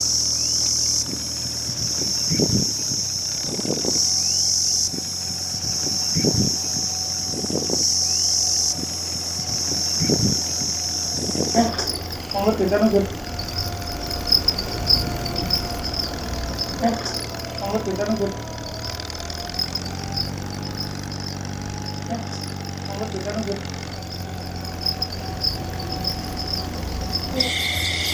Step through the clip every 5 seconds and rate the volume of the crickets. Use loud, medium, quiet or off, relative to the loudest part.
loud, loud, loud, medium, medium, medium.